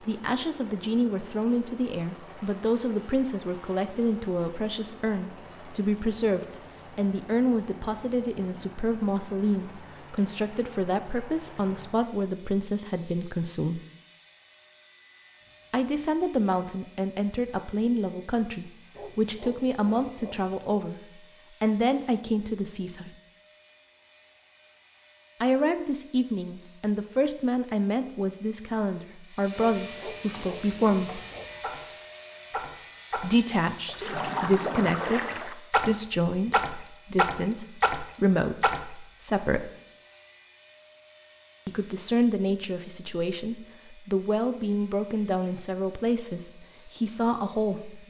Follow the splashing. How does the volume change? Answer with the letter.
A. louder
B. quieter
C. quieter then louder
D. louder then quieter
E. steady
A.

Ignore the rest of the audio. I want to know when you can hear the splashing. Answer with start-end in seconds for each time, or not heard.
30.2-38.9.